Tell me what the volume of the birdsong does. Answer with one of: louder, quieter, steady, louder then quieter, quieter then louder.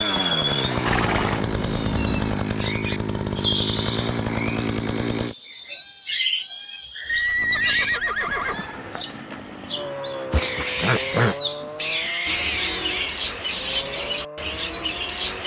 steady.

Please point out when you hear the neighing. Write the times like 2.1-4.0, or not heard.
0.1-1.4, 7.0-8.8, 10.3-11.3.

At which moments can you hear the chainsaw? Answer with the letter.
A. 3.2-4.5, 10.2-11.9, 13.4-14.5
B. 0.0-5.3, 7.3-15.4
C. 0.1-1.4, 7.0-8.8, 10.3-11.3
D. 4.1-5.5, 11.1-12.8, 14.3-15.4
B.